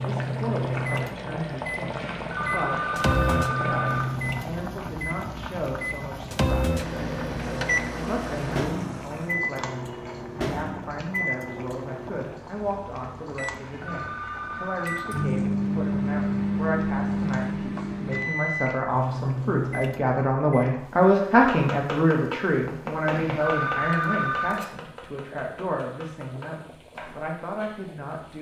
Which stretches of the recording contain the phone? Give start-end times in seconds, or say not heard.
2.0-4.2, 13.5-15.3, 23.1-24.7.